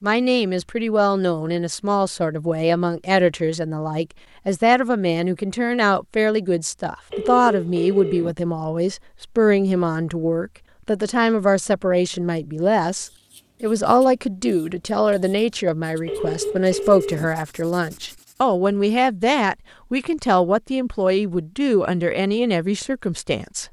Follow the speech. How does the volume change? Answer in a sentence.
The loudness of the speech stays about the same.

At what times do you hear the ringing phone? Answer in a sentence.
You can hear the ringing phone from 7.1 to 8.3 s and from 16.1 to 17.3 s.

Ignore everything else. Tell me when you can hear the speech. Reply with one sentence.
The speech can be heard from 0.0 to 23.6 s.